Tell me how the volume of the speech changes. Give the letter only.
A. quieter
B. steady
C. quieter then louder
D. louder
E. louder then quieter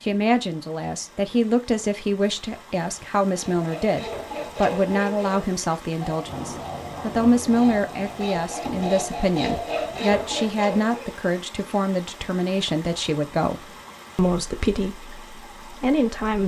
B.